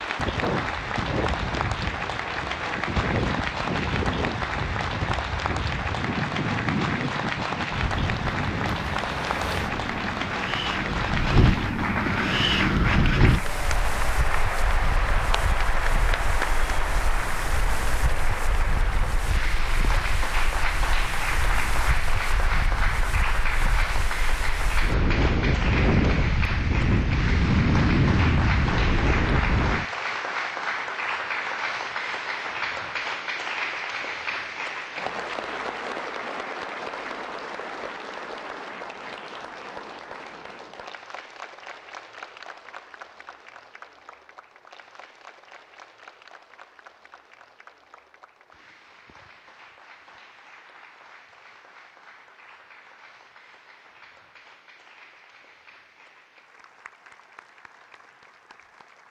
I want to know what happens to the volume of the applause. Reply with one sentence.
The loudness of the applause goes down.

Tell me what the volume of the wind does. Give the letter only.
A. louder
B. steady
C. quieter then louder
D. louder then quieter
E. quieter
C.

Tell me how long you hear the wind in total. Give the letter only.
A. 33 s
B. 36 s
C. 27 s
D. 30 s
D.